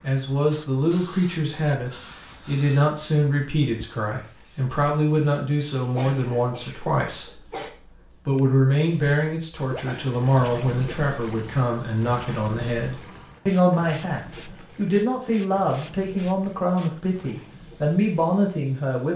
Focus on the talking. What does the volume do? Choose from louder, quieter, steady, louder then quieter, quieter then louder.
steady.